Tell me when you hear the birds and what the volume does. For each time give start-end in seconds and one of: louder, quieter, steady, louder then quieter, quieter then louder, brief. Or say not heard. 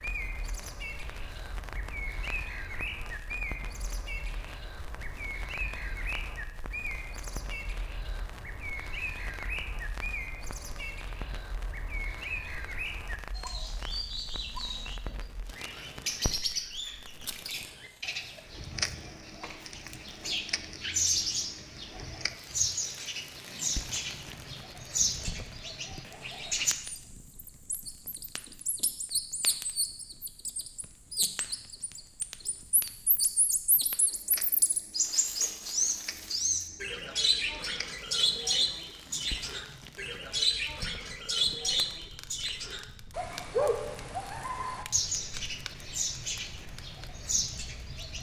0.0-48.1 louder.